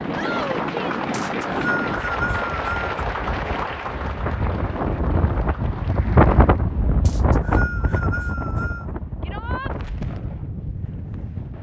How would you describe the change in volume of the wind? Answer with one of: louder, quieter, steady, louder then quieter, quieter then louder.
louder then quieter.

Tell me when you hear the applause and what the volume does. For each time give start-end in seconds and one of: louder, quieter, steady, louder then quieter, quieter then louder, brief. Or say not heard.
0.0-6.7 quieter.